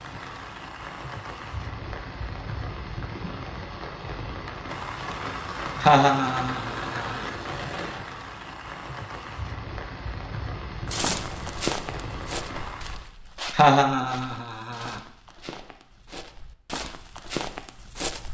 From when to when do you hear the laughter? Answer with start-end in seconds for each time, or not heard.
5.8-7.2, 13.5-15.0.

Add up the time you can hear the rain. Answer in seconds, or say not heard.
13 s.